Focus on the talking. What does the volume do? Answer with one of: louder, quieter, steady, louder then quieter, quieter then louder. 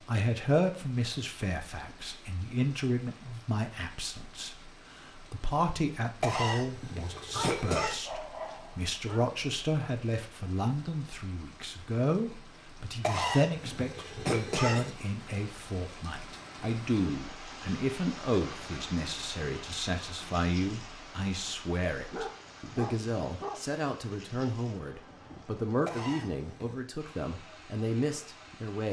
steady.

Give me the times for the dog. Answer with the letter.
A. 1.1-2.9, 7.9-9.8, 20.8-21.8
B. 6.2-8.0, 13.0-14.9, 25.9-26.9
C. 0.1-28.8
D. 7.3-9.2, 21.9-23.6
D.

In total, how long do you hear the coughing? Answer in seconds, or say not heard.
5 s.